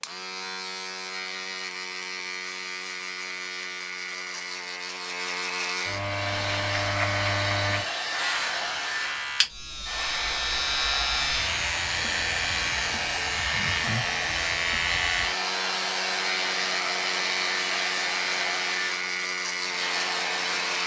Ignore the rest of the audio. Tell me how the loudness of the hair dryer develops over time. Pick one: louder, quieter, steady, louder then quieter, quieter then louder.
steady.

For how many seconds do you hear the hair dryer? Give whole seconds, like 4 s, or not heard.
15 s.